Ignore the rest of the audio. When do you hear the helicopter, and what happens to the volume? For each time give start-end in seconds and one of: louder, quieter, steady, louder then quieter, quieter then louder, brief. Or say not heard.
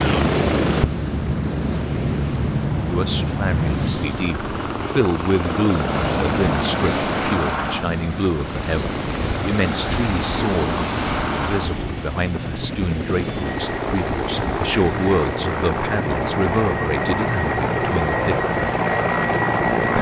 0.0-19.9 quieter then louder.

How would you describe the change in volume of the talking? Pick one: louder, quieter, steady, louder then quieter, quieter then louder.
steady.